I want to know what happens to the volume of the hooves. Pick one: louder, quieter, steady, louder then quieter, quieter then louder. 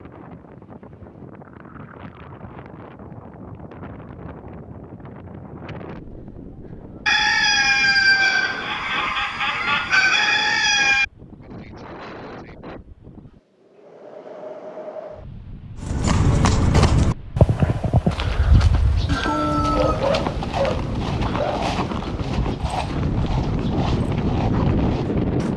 quieter.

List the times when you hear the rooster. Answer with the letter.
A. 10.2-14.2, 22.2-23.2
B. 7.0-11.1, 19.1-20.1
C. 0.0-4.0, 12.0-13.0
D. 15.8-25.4
B.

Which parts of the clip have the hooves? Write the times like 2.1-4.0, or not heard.
15.8-25.4.